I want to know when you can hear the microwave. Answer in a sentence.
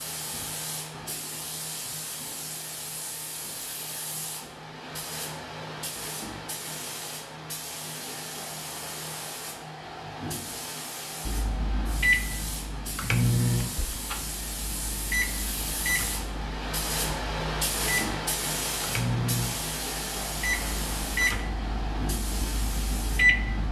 The microwave can be heard from 11.2 to 23.6 s.